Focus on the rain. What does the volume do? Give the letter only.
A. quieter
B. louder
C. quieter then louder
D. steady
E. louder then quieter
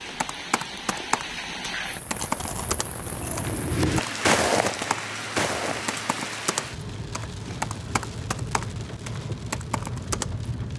D.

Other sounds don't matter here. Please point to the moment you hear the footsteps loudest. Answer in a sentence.
The loudest moment of the footsteps is at 4 seconds.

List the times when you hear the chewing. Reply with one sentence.
You can hear the chewing from 2.1 to 3.6 s.